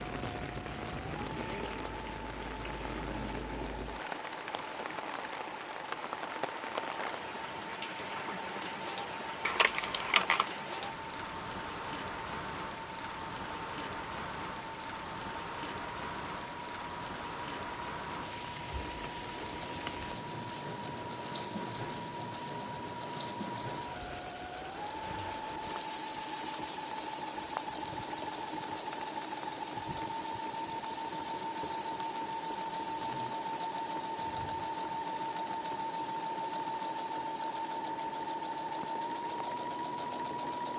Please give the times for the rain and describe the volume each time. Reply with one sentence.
The rain can be heard from 0.0 to 40.7 s, getting quieter.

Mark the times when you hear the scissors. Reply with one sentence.
The scissors can be heard from 9.4 to 10.5 s.